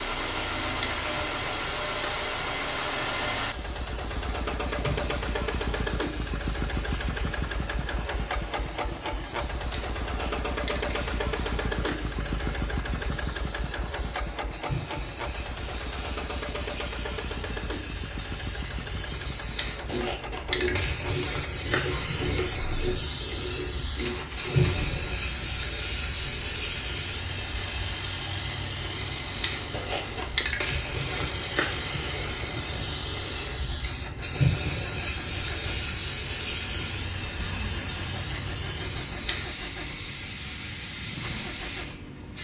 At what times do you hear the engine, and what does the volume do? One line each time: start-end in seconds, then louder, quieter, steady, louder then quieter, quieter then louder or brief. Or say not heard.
0.0-42.3 quieter.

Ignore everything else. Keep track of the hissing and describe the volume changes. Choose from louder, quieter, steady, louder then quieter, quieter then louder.
louder.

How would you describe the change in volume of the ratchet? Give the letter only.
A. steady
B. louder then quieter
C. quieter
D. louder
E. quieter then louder
A.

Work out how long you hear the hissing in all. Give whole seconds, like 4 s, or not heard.
42 s.